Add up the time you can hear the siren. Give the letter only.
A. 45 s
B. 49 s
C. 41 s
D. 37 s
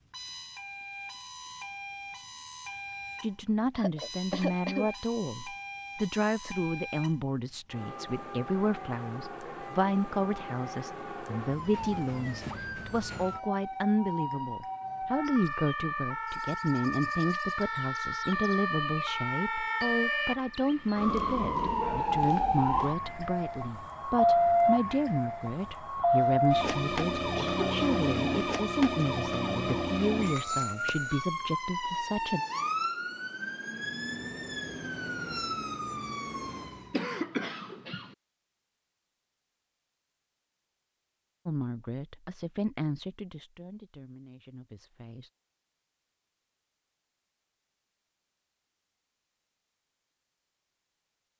D.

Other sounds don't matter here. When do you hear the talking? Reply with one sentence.
The talking can be heard from 3.2 to 32.4 s and from 41.5 to 45.3 s.